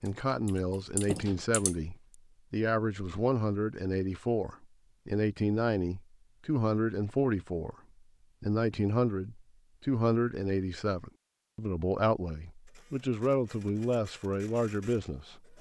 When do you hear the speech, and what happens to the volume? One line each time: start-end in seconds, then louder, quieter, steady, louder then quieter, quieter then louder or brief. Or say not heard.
0.0-7.8 steady
8.4-15.5 steady.